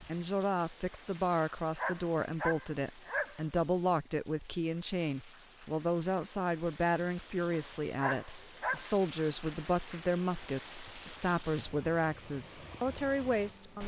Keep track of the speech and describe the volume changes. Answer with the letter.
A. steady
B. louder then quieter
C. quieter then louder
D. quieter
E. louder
A.